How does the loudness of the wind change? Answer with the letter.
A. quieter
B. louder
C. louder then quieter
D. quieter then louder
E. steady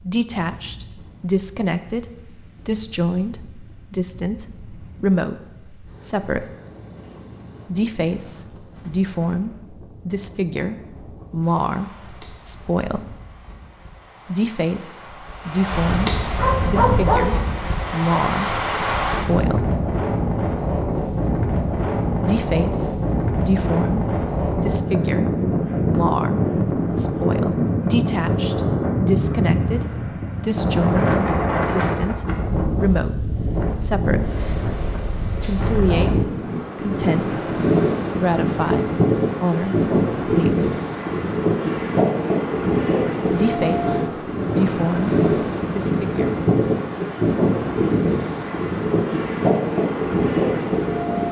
B.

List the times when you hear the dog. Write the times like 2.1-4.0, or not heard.
16.4-17.4.